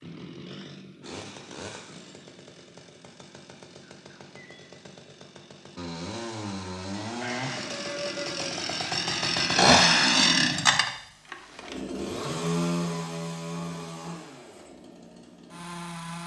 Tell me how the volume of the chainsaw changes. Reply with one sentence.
The volume of the chainsaw goes up, then down.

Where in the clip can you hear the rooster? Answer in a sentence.
You can hear the rooster from 7.2 to 8.6 s.